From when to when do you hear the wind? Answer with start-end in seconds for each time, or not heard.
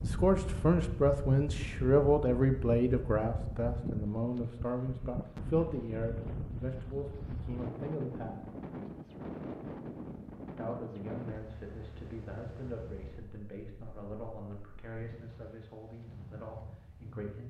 0.0-17.4.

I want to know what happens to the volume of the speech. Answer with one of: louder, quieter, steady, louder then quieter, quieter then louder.
quieter.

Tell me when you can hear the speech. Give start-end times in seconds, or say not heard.
0.0-8.4, 10.6-17.4.